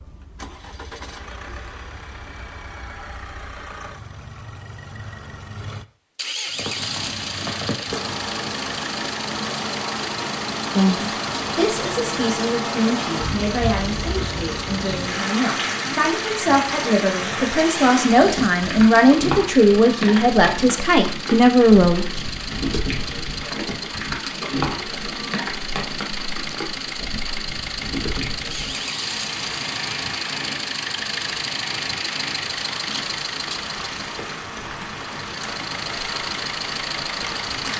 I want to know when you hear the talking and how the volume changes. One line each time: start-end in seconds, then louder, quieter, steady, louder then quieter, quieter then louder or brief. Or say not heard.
10.8-22.1 louder.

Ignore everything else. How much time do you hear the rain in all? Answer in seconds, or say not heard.
31 s.